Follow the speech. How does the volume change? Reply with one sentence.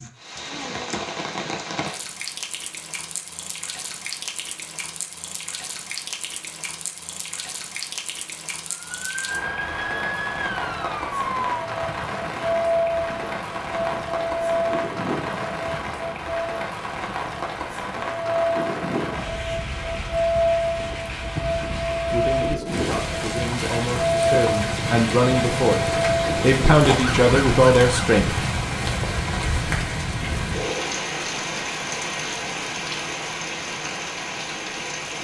The loudness of the speech goes up.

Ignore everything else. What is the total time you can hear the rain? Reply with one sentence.
You can hear the rain for 35 seconds altogether.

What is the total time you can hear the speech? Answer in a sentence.
You can hear the speech for 6 seconds altogether.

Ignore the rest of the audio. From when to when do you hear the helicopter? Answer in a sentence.
The helicopter can't be heard in this clip.